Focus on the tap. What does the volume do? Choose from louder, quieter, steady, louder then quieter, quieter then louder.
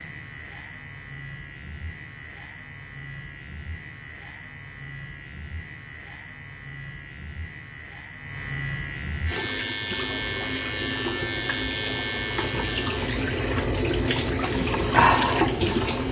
louder.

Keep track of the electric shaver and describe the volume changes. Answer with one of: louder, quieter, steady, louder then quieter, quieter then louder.
louder.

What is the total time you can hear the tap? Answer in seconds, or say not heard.
7 s.